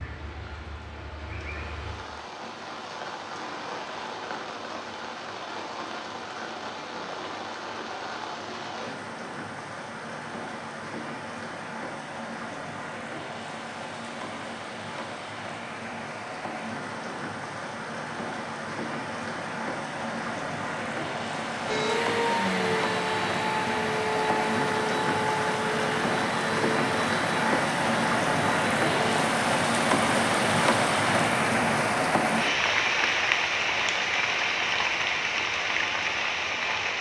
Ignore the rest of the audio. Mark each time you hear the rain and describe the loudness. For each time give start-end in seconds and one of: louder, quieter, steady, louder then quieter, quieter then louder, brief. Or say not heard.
0.0-36.9 louder.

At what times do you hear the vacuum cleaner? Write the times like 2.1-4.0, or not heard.
21.6-29.1.